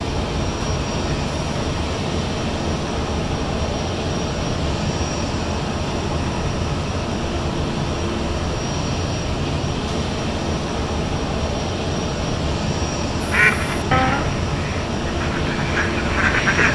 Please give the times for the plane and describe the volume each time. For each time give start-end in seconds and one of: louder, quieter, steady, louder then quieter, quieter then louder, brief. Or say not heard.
0.0-16.7 steady.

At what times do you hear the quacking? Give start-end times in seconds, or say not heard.
13.2-16.7.